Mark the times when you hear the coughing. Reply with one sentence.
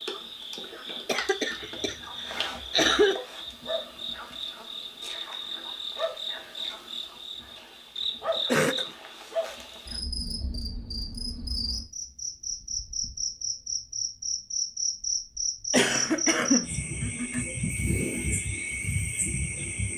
The coughing can be heard from 1.1 to 3.1 s, from 8.4 to 8.8 s and from 15.7 to 17.4 s.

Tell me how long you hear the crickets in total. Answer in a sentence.
You can hear the crickets for 20 seconds altogether.